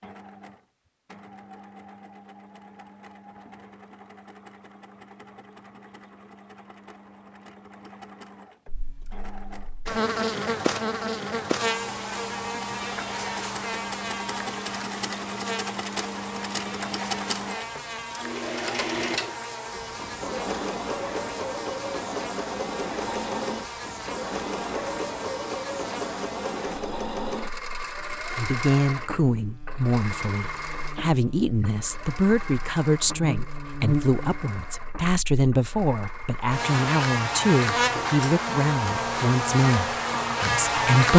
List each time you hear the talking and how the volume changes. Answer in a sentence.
The talking can be heard from 28.4 to 41.1 s, at a steady volume.